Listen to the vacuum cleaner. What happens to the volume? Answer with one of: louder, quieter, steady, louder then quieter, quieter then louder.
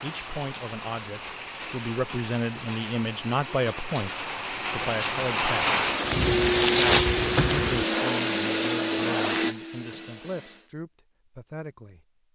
quieter.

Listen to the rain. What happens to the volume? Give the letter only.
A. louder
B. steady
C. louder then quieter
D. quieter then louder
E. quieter
A.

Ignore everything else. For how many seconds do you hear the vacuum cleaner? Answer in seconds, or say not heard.
5 s.